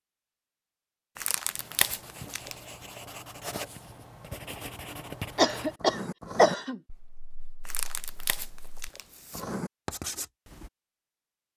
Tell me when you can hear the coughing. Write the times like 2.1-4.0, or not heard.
5.3-6.8.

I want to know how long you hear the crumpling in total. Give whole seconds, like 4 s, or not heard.
3 s.